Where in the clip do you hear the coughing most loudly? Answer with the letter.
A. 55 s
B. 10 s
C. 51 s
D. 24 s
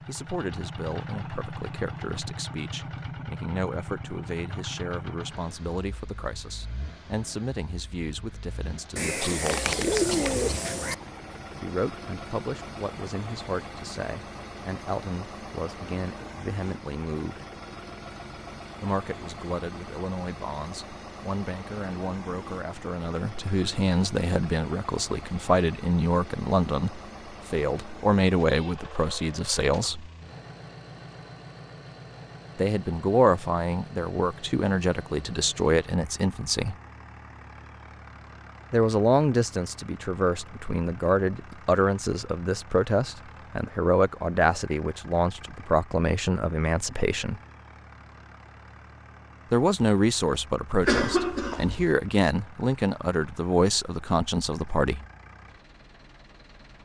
C.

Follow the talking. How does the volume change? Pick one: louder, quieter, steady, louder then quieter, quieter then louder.
louder.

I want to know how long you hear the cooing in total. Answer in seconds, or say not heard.
2 s.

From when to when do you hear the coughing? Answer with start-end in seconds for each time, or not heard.
8.8-10.3, 50.8-52.0.